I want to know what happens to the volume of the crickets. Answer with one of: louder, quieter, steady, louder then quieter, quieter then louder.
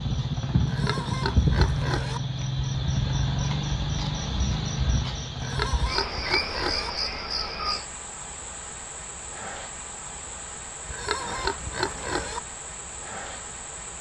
quieter.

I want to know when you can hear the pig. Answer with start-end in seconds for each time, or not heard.
0.7-2.2, 5.4-6.9, 10.8-12.4.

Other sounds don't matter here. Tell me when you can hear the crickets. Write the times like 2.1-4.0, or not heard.
0.0-13.9.